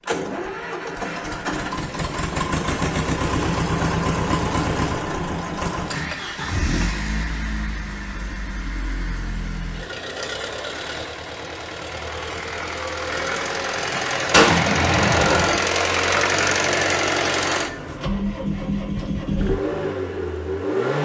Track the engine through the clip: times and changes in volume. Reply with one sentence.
The engine can be heard from 0.0 to 21.0 s, getting quieter then louder.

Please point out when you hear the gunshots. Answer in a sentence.
The gunshots can be heard from 14.3 to 15.6 s.